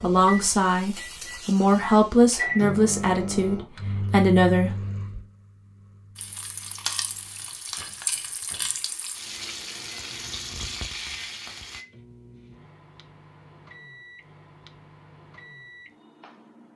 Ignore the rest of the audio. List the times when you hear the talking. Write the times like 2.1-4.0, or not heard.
0.0-4.8.